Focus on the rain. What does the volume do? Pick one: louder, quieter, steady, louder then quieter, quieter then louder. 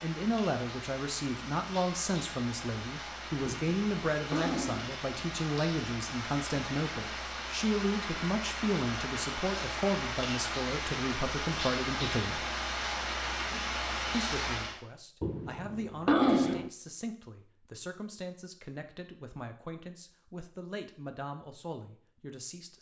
louder.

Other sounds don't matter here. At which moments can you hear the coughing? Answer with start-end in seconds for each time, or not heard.
3.5-5.0, 15.2-16.7.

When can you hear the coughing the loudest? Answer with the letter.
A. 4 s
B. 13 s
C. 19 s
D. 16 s
D.